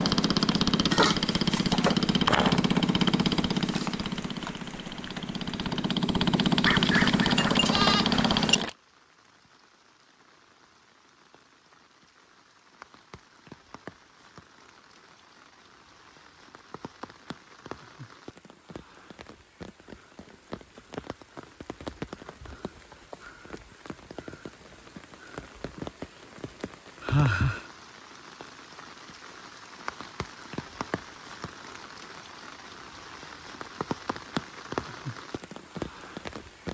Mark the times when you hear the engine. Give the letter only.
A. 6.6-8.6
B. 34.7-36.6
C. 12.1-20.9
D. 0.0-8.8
D.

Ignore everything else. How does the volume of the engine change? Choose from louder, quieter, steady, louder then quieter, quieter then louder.
quieter then louder.